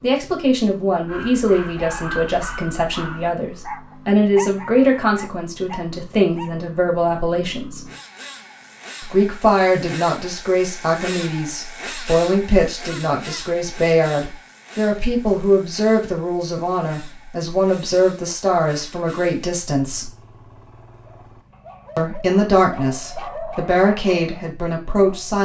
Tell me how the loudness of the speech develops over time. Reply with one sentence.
The loudness of the speech stays about the same.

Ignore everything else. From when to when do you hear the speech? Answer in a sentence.
The speech can be heard from 0.0 to 7.8 s, from 9.0 to 20.1 s and from 21.9 to 25.3 s.